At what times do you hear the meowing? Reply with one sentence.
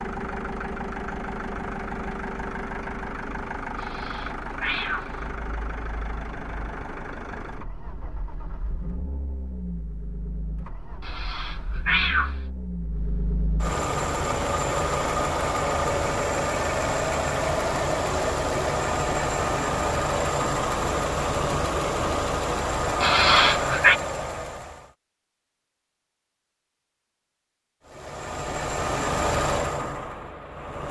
The meowing can be heard from 3.8 to 5.2 s, from 11.0 to 12.3 s and from 23.0 to 24.0 s.